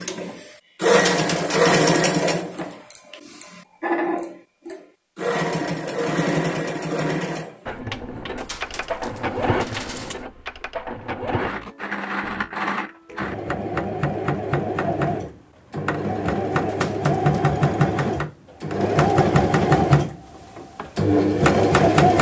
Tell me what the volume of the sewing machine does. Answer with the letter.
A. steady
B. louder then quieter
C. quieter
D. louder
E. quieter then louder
E.